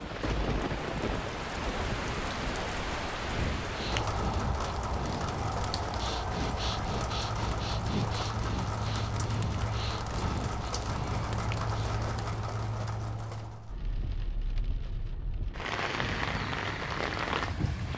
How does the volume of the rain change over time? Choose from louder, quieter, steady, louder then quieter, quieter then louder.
steady.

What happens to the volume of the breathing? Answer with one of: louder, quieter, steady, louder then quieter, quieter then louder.
steady.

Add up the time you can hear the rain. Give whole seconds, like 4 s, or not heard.
18 s.